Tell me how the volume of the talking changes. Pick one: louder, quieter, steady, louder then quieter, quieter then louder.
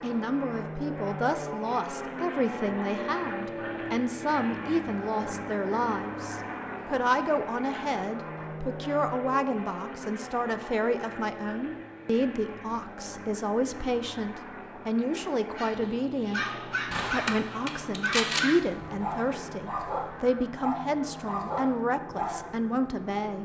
steady.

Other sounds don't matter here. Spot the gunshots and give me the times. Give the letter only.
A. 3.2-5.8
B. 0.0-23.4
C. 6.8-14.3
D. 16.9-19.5
D.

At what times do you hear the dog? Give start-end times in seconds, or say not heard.
15.0-22.6.